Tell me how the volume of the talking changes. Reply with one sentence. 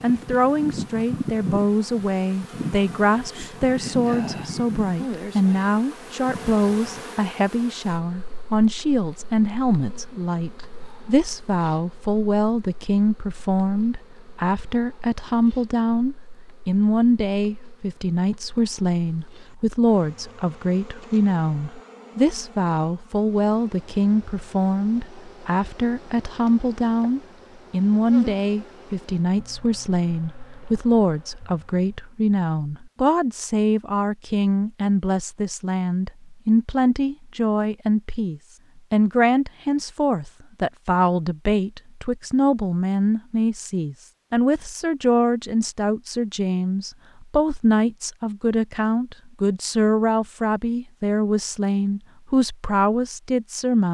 The loudness of the talking stays about the same.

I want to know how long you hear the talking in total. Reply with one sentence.
You can hear the talking for 54 seconds altogether.